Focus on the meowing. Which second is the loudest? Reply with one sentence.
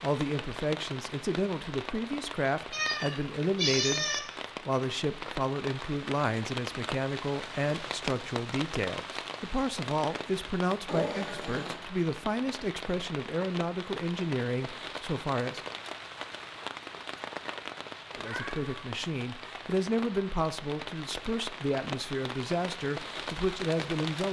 The volume of the meowing peaks at 4 seconds.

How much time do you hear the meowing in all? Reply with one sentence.
You can hear the meowing for 3 seconds altogether.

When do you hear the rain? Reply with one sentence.
The rain can be heard from 0.0 to 24.2 s.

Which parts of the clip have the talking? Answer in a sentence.
The talking can be heard from 0.0 to 15.6 s and from 18.1 to 24.2 s.